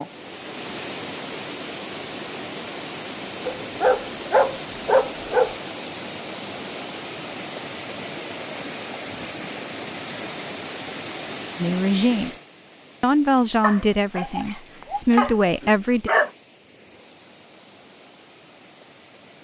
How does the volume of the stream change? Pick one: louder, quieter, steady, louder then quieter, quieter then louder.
quieter.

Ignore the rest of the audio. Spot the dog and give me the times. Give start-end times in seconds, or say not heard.
3.5-5.5, 13.6-16.3.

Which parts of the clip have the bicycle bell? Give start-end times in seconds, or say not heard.
not heard.